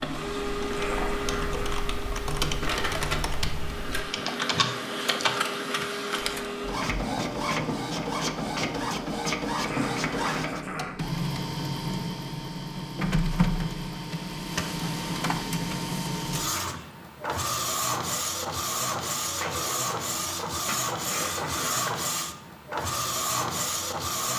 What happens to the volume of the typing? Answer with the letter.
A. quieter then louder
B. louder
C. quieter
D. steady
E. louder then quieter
B.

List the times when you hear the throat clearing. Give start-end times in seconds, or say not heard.
0.7-1.9, 9.7-11.0, 21.1-21.9.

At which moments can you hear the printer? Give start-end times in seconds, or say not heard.
0.0-24.3.